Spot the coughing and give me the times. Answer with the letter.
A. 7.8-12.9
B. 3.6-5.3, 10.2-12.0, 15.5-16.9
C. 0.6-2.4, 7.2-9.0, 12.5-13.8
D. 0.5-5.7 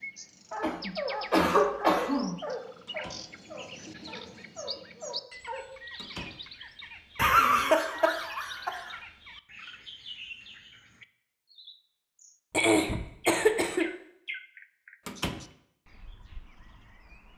C.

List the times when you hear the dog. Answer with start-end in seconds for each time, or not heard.
0.5-5.7.